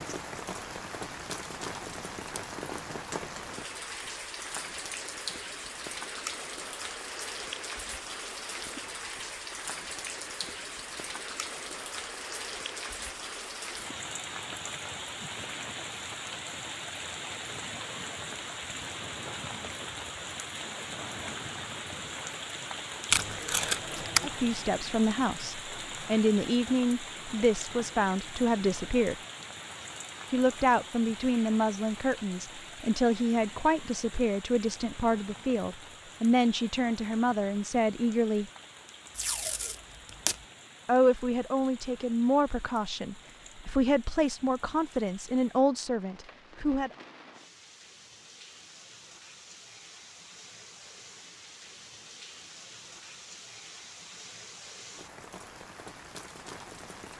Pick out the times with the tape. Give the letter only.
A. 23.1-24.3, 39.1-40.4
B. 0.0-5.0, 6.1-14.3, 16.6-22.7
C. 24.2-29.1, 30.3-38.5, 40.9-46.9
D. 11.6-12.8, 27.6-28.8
A.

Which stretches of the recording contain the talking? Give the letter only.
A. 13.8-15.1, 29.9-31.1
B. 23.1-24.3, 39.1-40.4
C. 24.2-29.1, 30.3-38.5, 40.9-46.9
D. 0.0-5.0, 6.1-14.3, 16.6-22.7
C.